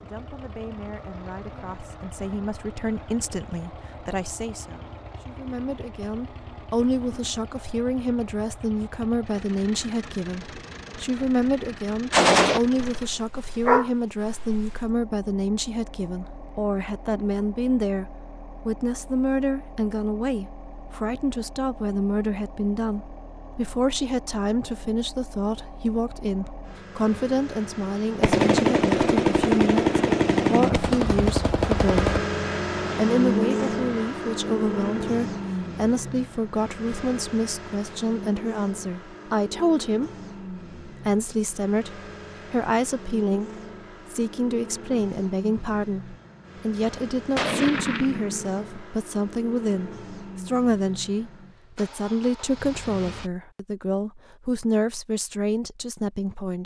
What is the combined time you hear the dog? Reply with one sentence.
The dog can be heard for 2 seconds in total.